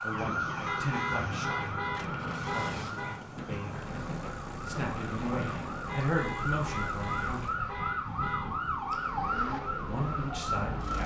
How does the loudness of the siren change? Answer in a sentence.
The volume of the siren goes down, then up.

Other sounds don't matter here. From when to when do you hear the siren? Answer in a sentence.
The siren can be heard from 0.0 to 11.0 s.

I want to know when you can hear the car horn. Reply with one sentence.
The car horn can be heard from 0.7 to 3.2 s and from 5.8 to 8.6 s.